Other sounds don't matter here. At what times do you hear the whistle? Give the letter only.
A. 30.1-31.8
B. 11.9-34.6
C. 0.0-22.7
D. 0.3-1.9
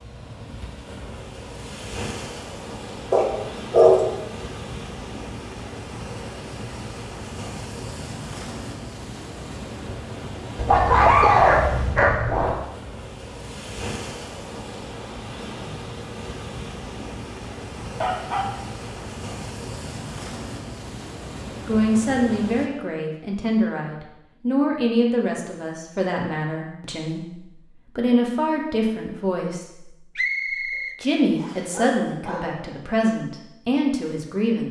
A.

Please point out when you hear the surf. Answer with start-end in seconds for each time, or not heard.
0.0-22.7.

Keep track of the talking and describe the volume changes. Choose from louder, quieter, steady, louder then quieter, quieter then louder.
steady.